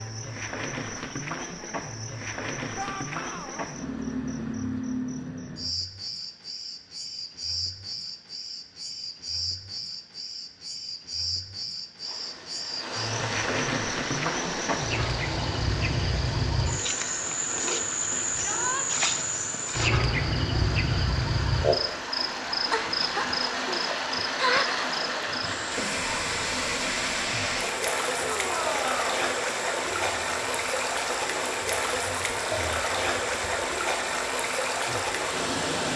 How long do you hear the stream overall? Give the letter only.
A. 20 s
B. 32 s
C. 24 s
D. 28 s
C.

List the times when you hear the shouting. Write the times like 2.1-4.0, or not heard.
2.8-3.6, 18.4-18.9, 28.2-29.1.